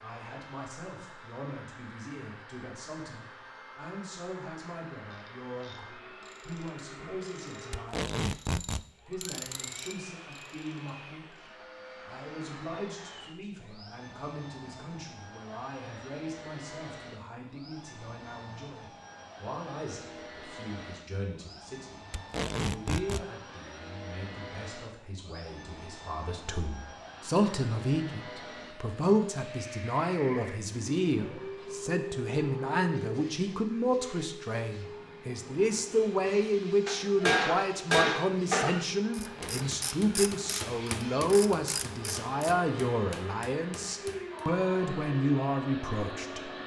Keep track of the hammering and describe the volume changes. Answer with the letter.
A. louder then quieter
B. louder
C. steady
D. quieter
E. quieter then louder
D.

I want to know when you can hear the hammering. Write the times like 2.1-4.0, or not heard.
36.9-44.5.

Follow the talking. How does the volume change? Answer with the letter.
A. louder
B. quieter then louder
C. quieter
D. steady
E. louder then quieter
A.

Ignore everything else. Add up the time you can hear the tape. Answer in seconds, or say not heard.
3 s.